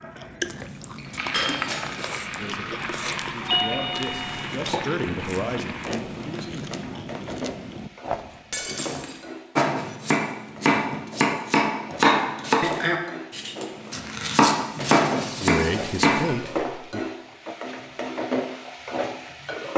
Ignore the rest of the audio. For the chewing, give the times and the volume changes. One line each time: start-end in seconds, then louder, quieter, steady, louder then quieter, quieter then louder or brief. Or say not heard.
0.0-8.7 steady.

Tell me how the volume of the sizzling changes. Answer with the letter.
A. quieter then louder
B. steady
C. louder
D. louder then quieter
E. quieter
A.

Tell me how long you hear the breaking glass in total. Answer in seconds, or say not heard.
3 s.